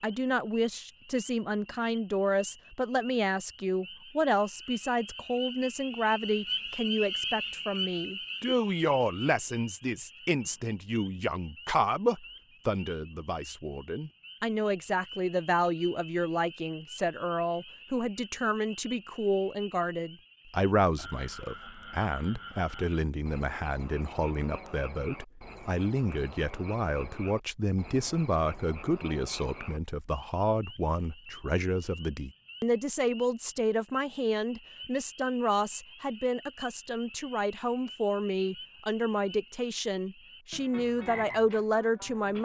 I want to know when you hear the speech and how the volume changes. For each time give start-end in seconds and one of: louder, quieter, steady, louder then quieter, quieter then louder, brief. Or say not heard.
0.0-42.3 steady.